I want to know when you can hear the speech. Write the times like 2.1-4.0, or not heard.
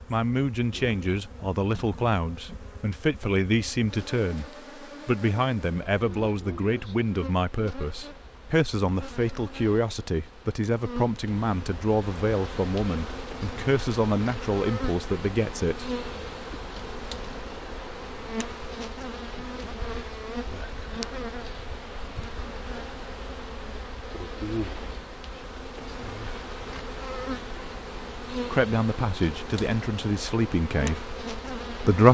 0.1-15.9, 28.4-32.0.